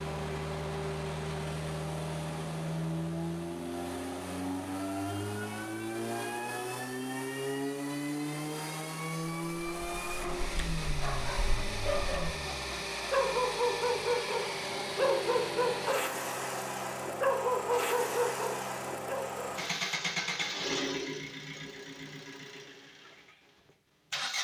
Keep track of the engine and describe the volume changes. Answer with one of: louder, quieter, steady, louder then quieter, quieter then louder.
steady.